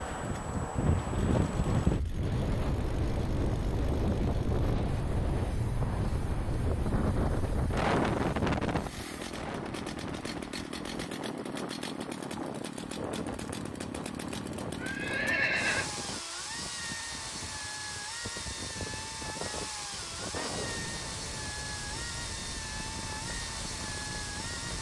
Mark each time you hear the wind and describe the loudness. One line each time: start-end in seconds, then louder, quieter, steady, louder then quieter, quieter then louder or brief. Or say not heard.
0.0-24.7 quieter.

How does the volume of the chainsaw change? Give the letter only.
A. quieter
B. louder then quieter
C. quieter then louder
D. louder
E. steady
D.